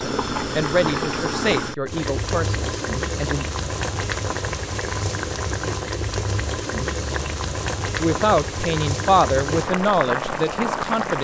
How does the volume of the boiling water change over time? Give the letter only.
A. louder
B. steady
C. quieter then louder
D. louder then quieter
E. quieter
B.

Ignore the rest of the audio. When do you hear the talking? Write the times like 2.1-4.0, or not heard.
0.0-3.5, 8.0-11.1.